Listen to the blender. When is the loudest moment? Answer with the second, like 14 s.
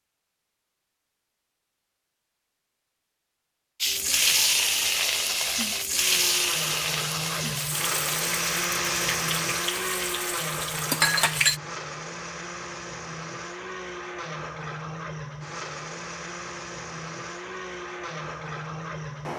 9 s.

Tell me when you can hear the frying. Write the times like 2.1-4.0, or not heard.
3.8-11.6.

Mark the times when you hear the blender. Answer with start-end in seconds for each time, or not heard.
5.8-19.3.